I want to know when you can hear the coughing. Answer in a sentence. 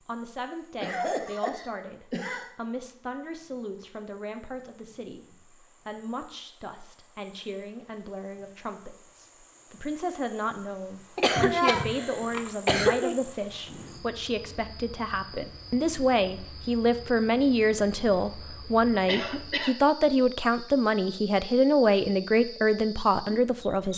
The coughing can be heard from 0.8 to 2.5 s, from 11.2 to 13.2 s and from 19.1 to 19.8 s.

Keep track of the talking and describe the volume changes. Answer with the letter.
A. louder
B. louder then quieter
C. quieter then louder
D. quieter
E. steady
A.